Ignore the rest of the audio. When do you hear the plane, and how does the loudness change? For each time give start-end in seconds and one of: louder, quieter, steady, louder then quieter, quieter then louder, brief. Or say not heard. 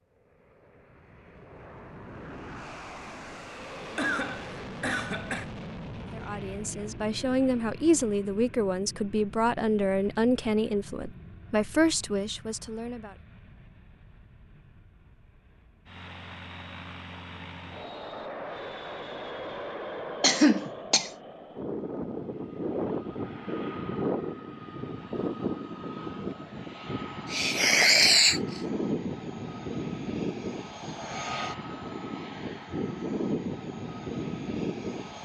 0.1-35.2 quieter then louder.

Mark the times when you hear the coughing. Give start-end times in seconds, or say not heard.
4.0-5.5, 20.2-21.1, 27.3-28.4.